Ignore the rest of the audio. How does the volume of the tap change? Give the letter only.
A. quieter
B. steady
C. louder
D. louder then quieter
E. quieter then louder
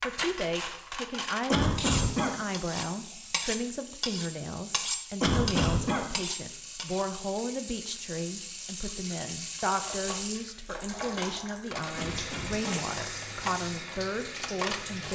C.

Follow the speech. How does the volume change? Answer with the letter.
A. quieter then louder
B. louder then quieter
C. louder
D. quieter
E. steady
E.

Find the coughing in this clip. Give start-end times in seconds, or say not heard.
1.5-2.4, 5.2-6.0, 11.9-12.8.